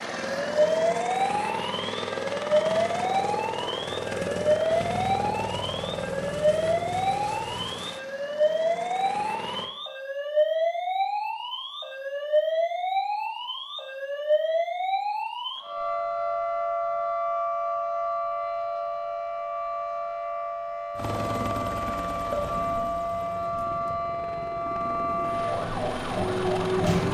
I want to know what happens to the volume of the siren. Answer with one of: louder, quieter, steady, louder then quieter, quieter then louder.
steady.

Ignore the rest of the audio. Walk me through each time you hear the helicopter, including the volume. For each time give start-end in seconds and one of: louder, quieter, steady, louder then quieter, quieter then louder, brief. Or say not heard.
0.0-9.7 quieter
20.9-27.0 quieter then louder.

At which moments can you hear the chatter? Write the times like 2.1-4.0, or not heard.
not heard.